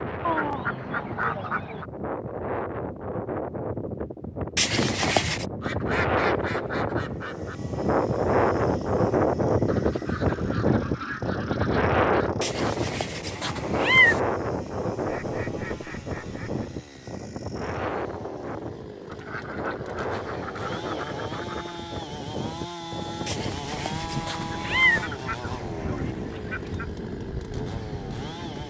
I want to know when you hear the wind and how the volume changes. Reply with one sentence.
You can hear the wind from 0.0 to 28.6 s, getting louder then quieter.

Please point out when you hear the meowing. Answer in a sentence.
The meowing can be heard from 4.5 to 5.5 s, from 12.4 to 14.2 s and from 23.2 to 25.1 s.